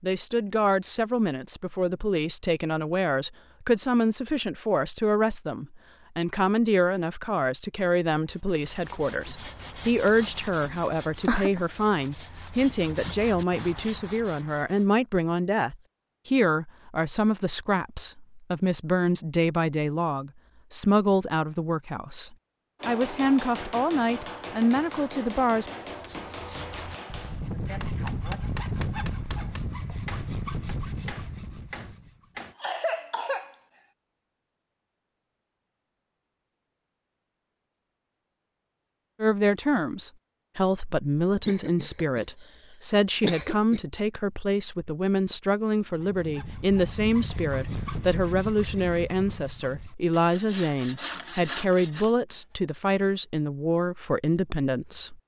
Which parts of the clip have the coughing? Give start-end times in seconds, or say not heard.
10.7-11.6, 32.4-33.5, 41.5-42.2, 43.2-43.8.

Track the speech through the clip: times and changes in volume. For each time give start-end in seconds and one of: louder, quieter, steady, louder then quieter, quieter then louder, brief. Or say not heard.
0.0-25.7 steady
39.2-55.1 steady.